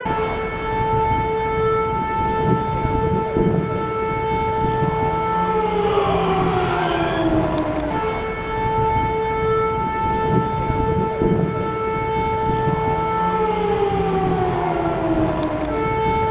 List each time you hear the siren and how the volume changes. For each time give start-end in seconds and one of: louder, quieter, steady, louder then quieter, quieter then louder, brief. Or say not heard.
0.0-16.2 steady.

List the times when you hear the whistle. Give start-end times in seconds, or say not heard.
not heard.